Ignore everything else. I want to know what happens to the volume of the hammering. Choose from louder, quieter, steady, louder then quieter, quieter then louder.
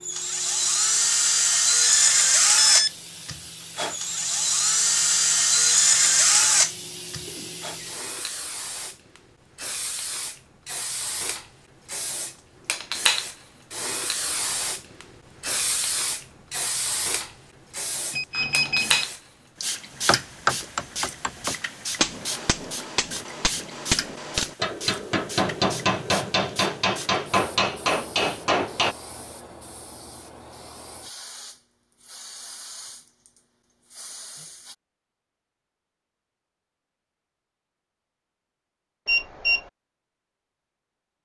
quieter then louder.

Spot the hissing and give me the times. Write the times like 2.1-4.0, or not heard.
0.0-34.8.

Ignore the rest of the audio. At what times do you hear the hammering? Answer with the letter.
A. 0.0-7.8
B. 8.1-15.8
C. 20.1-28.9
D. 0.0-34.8
C.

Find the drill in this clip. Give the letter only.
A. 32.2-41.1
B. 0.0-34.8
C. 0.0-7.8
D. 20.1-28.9
C.